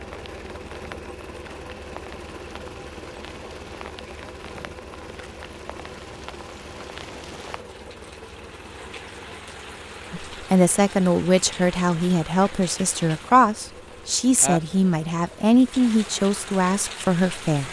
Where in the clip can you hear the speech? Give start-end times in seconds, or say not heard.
10.1-17.6.